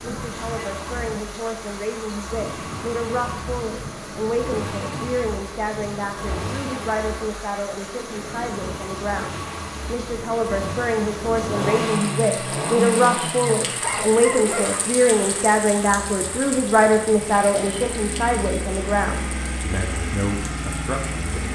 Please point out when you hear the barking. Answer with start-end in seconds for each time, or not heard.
13.7-14.8.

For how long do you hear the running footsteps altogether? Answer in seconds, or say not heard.
not heard.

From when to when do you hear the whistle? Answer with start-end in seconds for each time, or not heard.
not heard.